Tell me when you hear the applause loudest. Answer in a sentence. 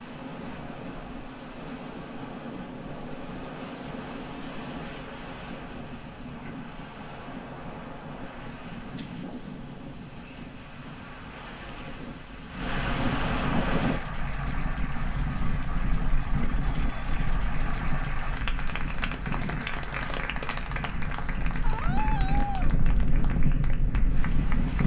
The loudest moment of the applause is at 20 seconds.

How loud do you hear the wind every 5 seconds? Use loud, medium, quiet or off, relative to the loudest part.
medium, medium, loud, loud, loud.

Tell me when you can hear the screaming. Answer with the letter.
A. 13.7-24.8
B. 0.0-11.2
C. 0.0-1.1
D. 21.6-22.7
D.